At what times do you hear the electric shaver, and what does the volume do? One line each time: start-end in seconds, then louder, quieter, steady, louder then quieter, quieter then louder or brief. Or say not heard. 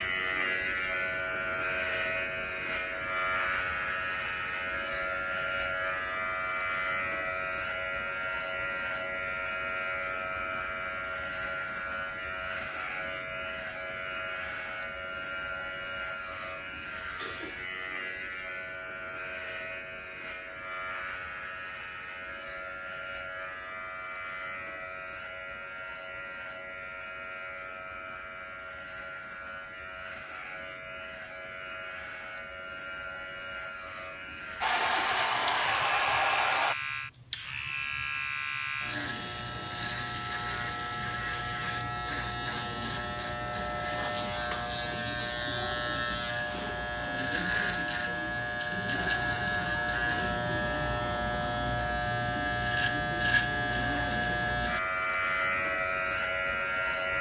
0.0-57.1 quieter then louder.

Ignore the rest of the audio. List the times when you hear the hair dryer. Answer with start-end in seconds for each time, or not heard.
34.6-36.8.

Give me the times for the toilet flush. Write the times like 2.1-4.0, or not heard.
not heard.